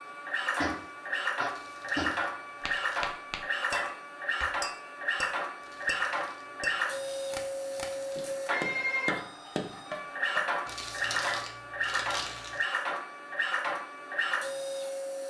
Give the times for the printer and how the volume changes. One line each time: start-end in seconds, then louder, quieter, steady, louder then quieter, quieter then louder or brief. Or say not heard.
0.0-15.2 steady.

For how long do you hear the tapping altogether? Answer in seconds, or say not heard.
11 s.